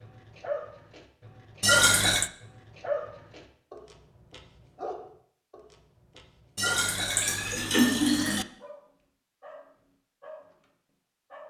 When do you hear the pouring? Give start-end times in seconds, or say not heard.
1.6-2.3, 6.5-8.4.